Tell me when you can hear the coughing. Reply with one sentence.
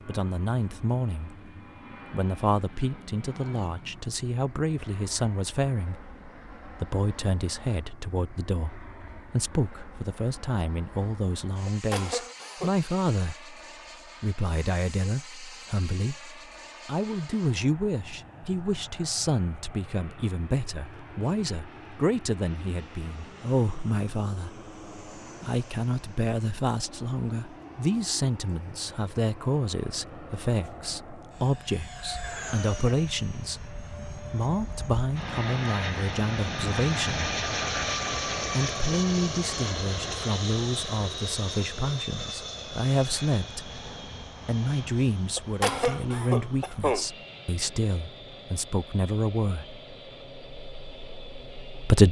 The coughing can be heard from 11.7 to 12.8 s and from 45.4 to 47.0 s.